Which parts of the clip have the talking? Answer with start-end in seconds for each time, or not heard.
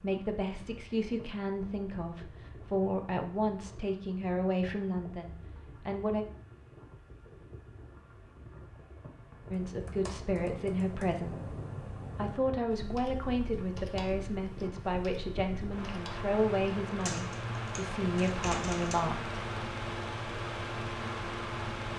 0.0-6.2, 9.5-11.3, 12.2-19.4.